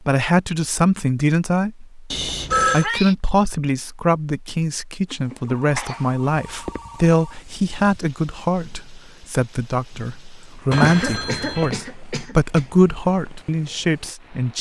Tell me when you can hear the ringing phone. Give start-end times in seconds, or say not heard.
2.1-2.9, 5.5-7.2, 10.7-11.8.